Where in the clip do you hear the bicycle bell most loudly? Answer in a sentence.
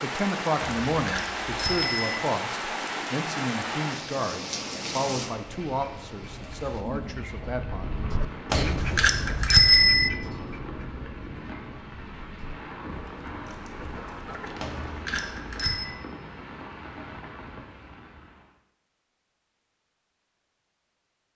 The loudest moment of the bicycle bell is at 10 seconds.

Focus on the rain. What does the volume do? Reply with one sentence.
The loudness of the rain goes down.